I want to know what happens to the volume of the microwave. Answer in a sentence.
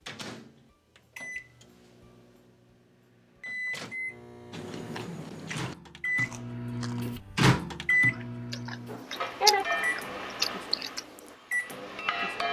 The volume of the microwave goes up, then down.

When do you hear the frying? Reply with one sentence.
The frying can be heard from 9.1 to 12.4 s.